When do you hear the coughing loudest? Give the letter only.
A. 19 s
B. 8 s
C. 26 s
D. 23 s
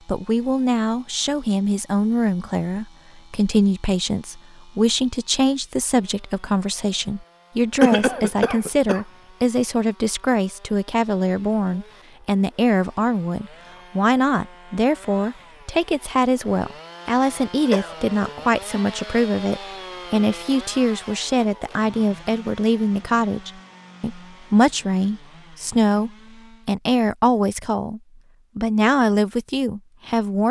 B.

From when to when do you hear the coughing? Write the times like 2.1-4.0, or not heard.
7.8-9.1, 17.6-18.4.